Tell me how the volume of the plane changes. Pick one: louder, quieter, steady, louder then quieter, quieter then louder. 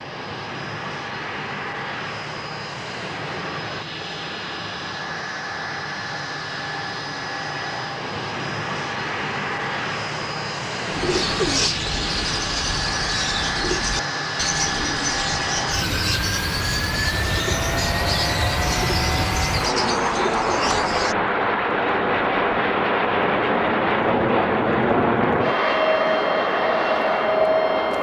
louder.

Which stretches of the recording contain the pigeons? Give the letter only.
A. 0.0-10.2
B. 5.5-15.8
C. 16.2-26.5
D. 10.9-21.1
D.